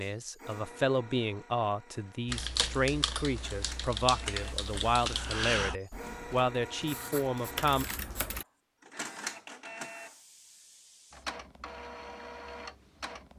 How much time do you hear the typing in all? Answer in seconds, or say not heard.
6 s.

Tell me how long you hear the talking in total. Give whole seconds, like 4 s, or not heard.
8 s.